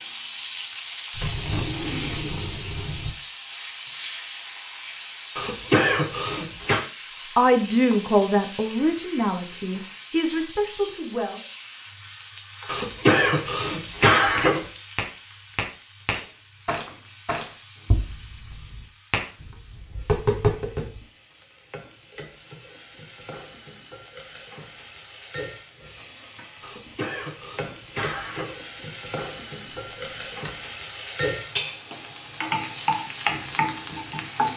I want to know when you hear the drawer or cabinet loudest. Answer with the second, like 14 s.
2 s.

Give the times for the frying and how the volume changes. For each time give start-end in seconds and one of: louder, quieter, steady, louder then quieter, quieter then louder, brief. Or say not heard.
0.0-34.5 quieter then louder.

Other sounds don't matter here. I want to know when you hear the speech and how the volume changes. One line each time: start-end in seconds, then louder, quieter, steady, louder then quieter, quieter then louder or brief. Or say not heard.
7.3-11.4 quieter.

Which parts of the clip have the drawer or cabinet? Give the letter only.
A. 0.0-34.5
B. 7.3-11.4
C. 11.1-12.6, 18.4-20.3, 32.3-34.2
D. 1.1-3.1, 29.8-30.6
D.